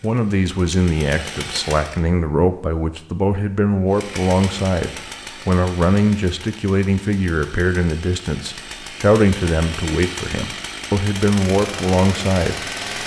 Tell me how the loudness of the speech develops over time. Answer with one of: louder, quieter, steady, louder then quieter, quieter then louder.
steady.